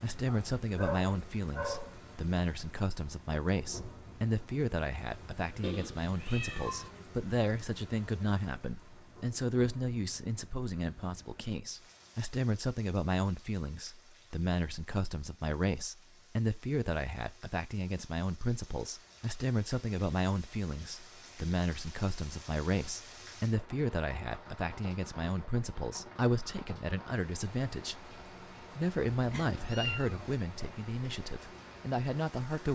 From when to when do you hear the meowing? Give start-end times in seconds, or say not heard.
5.6-6.9, 29.1-30.4.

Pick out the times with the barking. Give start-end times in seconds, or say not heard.
0.2-1.9.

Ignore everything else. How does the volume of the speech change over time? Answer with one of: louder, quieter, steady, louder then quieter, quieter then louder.
steady.